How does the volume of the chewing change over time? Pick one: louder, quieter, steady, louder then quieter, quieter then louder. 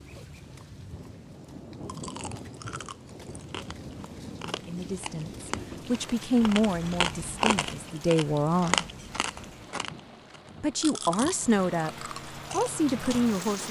louder then quieter.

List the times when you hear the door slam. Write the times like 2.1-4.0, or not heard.
not heard.